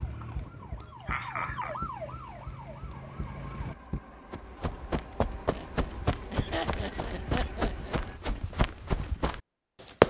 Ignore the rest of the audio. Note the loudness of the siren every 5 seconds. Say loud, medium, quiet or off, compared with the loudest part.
loud, off.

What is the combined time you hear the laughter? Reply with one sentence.
The laughter can be heard for 4 seconds in total.